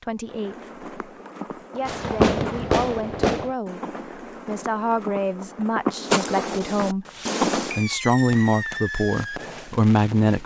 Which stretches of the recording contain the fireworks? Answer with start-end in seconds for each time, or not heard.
1.9-3.5, 7.0-10.4.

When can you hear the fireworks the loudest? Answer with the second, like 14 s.
2 s.